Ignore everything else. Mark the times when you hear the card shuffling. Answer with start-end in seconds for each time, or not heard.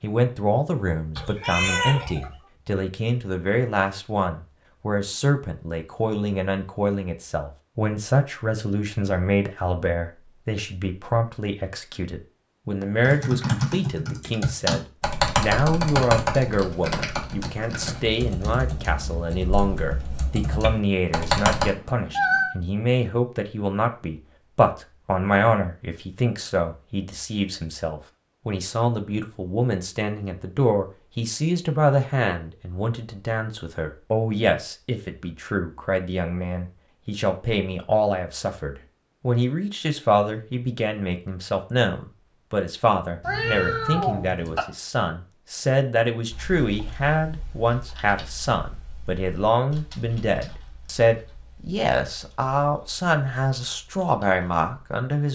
not heard.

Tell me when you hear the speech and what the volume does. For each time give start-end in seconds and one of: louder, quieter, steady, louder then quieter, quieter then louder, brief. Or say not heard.
0.0-55.2 steady.